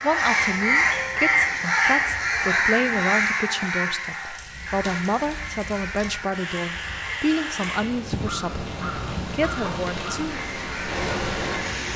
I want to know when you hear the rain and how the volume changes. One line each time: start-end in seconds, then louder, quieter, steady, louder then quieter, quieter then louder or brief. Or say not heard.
4.0-11.9 louder.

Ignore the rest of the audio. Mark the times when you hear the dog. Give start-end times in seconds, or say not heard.
8.1-9.8.